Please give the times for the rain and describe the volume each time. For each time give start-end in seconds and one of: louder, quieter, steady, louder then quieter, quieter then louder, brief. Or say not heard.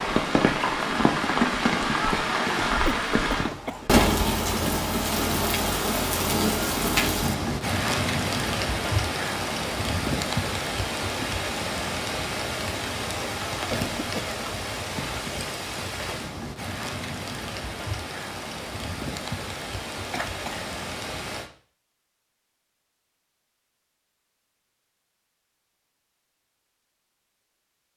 0.0-21.5 quieter.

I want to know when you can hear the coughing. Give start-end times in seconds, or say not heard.
2.9-3.9, 13.7-14.4, 20.1-20.6.